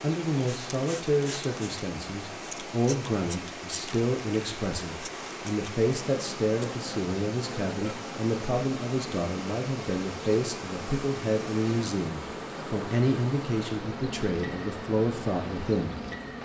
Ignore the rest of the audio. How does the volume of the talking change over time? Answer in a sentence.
The volume of the talking stays about the same.